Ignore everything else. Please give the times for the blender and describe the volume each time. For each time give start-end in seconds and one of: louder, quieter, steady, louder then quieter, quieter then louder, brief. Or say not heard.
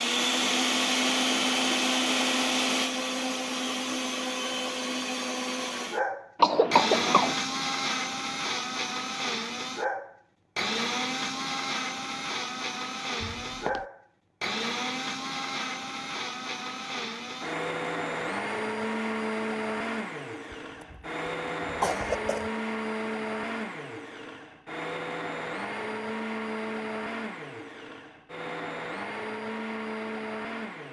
0.0-30.8 quieter.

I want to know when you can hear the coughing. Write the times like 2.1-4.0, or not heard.
6.3-7.3, 20.5-21.0, 21.6-22.5.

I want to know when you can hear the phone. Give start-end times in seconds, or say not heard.
13.2-13.8.